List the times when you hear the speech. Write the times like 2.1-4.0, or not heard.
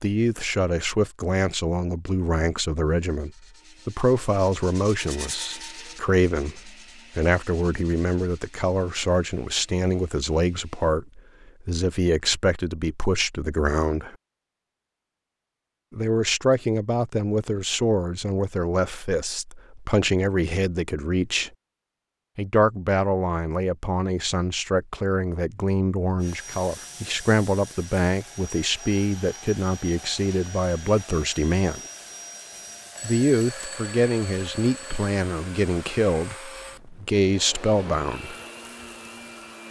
0.0-14.2, 15.9-21.5, 22.4-31.8, 33.0-38.4.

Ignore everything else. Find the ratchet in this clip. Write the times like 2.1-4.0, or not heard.
not heard.